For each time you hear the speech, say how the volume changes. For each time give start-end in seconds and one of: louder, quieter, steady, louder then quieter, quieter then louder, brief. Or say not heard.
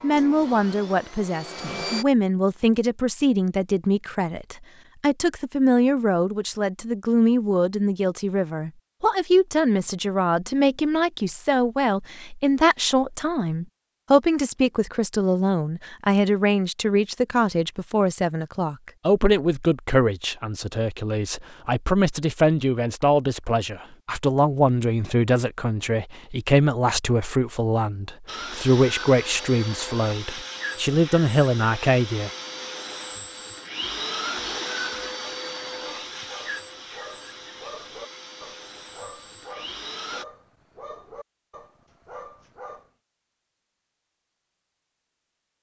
0.0-32.3 steady.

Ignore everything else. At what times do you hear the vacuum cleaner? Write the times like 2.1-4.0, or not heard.
0.0-2.0, 28.2-40.2.